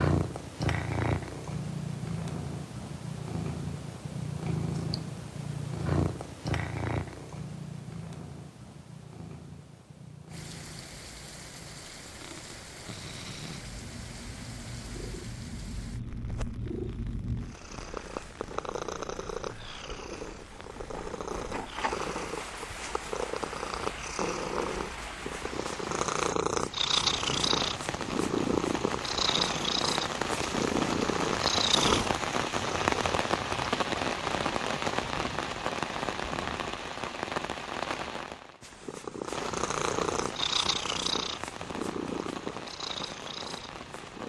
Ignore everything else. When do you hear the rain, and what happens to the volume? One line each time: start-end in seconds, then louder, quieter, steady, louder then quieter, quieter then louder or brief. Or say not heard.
10.3-44.2 louder then quieter.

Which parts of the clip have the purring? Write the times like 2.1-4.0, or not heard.
0.0-33.0, 38.6-44.2.